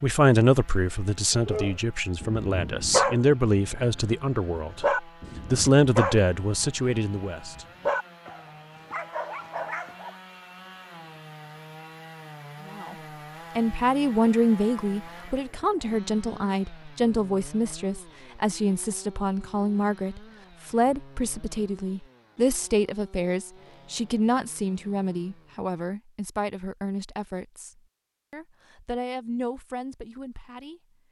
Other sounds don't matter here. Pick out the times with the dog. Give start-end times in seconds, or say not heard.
1.4-10.2.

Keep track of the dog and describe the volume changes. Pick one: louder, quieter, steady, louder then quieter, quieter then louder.
quieter.